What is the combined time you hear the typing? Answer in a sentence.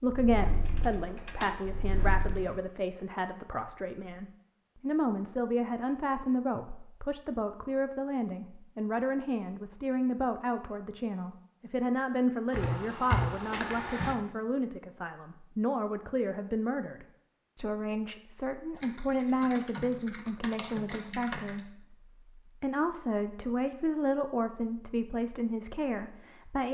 You can hear the typing for 7 seconds altogether.